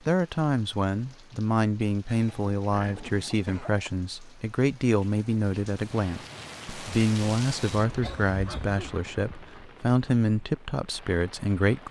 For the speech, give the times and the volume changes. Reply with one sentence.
The speech can be heard from 0.1 to 11.8 s, at a steady volume.